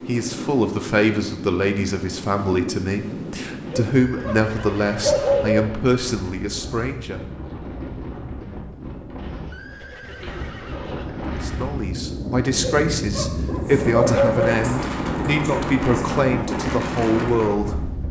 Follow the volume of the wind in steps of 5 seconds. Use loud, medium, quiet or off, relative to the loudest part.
medium, medium, loud, loud.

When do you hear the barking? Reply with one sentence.
The barking can be heard from 3.7 to 5.7 s and from 12.6 to 14.6 s.